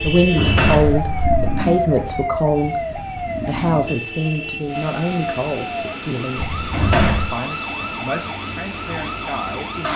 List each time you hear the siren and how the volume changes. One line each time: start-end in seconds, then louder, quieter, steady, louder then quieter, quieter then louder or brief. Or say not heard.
0.0-9.9 quieter.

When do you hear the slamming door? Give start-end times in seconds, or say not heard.
0.2-1.6, 6.3-7.3.